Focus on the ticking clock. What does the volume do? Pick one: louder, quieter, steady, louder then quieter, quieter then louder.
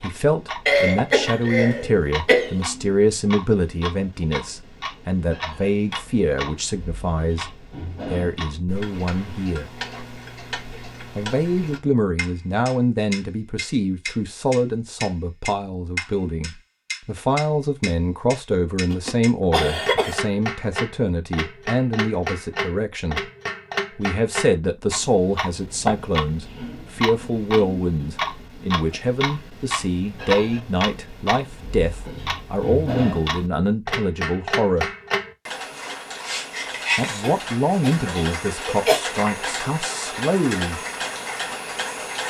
louder.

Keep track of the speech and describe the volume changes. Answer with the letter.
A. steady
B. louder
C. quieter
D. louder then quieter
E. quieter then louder
A.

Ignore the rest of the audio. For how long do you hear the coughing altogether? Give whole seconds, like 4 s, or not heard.
5 s.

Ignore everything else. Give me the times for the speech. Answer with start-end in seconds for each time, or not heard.
0.0-9.7, 11.2-23.2, 23.9-34.9, 37.0-40.8.